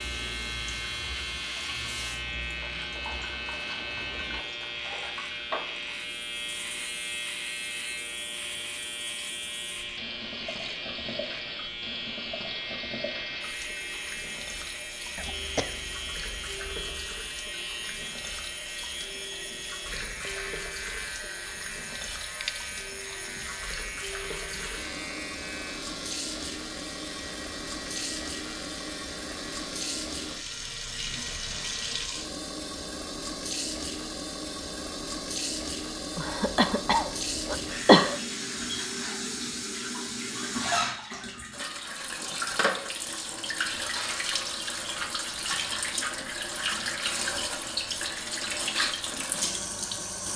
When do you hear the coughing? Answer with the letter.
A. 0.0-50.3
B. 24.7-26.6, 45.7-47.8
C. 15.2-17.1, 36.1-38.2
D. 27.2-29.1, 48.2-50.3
C.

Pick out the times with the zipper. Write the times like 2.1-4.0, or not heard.
not heard.